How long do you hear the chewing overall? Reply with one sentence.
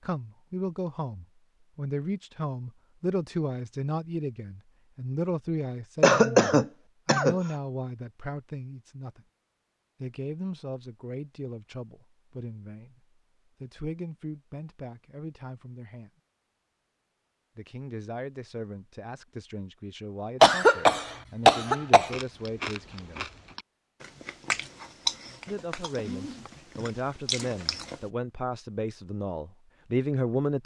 You can hear the chewing for 6 seconds altogether.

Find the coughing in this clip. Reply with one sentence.
You can hear the coughing from 6.0 to 7.3 s and from 20.4 to 22.1 s.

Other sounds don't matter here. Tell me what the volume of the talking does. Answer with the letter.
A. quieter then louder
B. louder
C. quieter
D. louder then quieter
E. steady
A.